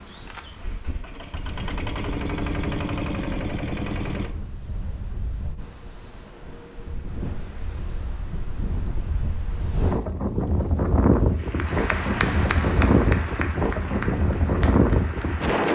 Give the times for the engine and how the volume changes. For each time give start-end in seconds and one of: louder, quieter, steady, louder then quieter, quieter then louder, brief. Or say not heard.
0.0-4.3 louder.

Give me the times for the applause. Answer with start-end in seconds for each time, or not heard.
11.3-15.7.